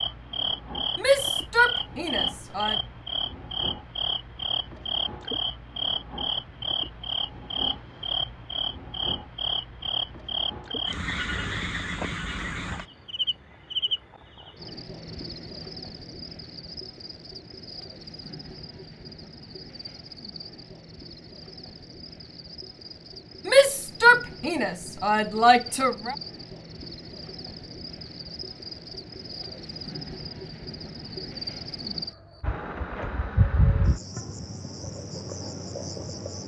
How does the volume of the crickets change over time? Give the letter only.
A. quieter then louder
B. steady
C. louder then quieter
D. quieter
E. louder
A.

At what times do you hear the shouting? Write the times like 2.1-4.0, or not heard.
0.9-2.8, 23.4-26.1.